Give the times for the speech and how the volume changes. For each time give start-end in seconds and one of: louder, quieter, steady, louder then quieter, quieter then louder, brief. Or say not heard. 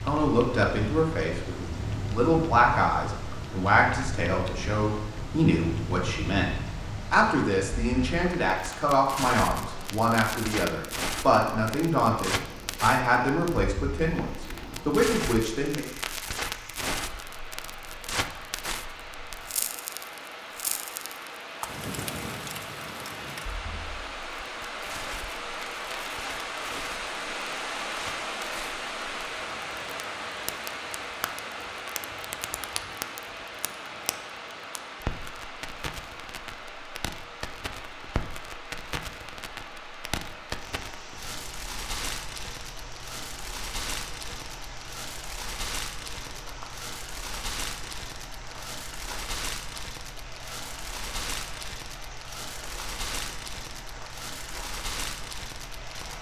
0.1-15.8 steady.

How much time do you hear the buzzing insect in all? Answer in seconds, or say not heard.
not heard.